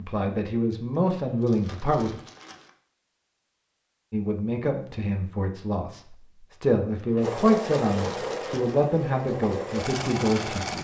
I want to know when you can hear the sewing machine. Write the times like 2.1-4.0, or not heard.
7.2-10.7.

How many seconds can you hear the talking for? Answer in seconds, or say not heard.
9 s.